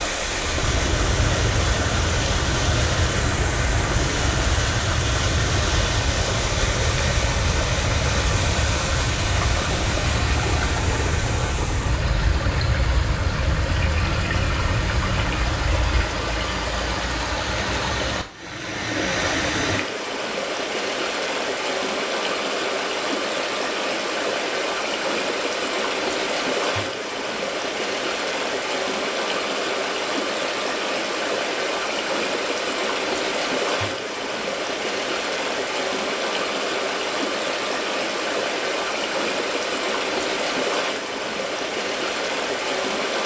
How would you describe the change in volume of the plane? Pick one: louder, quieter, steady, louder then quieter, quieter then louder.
steady.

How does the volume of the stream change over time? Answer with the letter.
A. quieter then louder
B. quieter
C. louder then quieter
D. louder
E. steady
E.